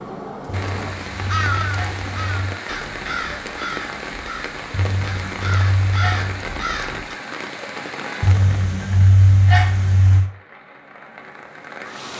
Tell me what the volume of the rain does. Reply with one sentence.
The loudness of the rain goes down.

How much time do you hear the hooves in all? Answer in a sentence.
You can't hear the hooves here.